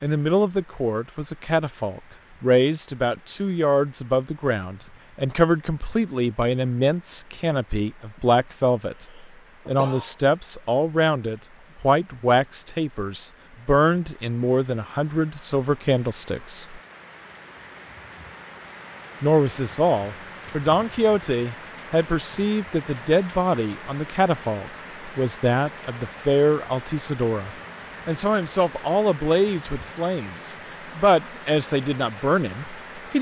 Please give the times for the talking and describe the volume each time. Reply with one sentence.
You can hear the talking from 0.0 to 16.8 s, at a steady volume; and from 19.2 to 33.1 s, at a steady volume.